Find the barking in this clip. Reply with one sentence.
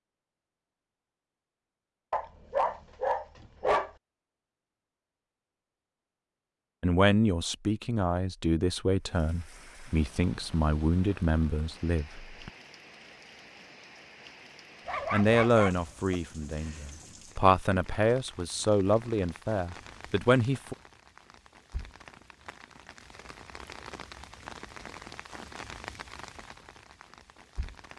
You can hear the barking from 2.1 to 3.9 s and from 14.8 to 16.2 s.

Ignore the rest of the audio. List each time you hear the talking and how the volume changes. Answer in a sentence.
You can hear the talking from 6.8 to 12.5 s, at a steady volume; and from 15.1 to 20.8 s, getting quieter then louder.